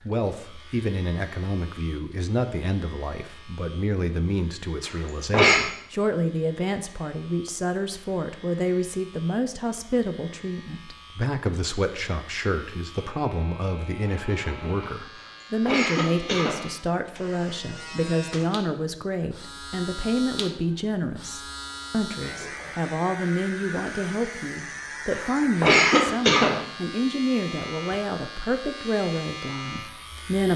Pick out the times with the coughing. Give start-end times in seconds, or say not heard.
4.8-5.6, 15.2-16.6, 25.1-26.6.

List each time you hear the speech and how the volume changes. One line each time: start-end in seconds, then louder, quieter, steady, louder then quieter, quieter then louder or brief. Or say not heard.
0.1-30.5 steady.